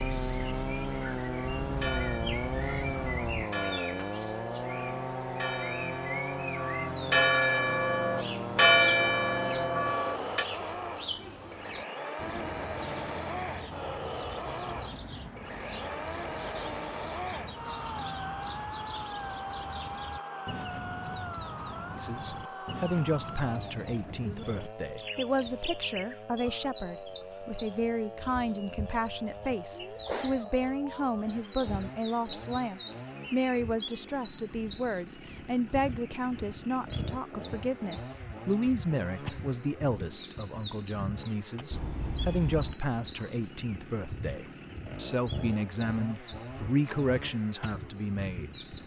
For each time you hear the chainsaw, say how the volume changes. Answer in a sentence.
The chainsaw can be heard from 0.0 to 48.8 s, getting quieter.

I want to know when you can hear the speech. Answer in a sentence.
The speech can be heard from 21.9 to 48.5 s.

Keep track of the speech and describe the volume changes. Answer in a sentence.
The volume of the speech stays about the same.